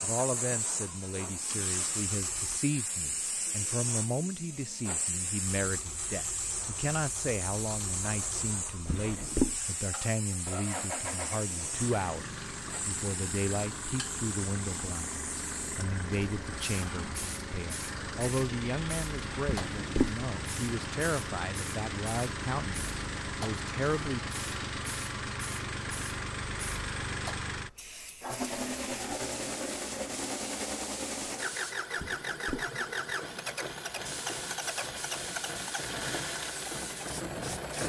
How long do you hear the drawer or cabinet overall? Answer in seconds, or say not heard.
2 s.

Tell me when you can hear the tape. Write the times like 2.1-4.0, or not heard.
not heard.